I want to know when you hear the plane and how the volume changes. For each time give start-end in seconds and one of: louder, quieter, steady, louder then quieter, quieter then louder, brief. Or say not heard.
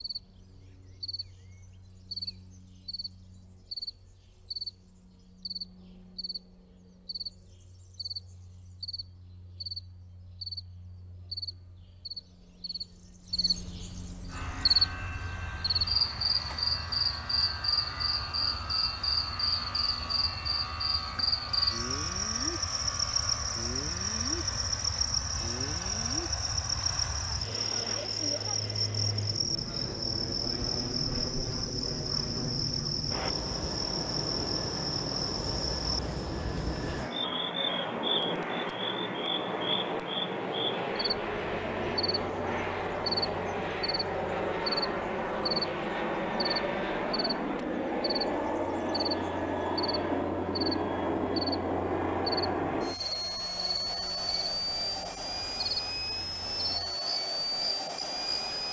14.2-58.6 louder.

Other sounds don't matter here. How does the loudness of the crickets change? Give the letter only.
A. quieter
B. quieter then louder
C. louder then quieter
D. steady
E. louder
C.